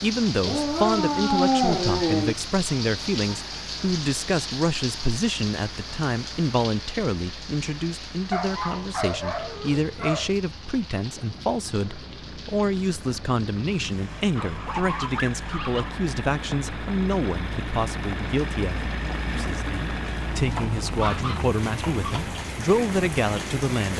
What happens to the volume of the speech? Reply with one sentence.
The volume of the speech stays about the same.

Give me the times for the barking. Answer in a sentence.
The barking can be heard from 0.4 to 2.4 s, from 8.3 to 10.3 s, from 14.3 to 16.0 s and from 20.5 to 22.3 s.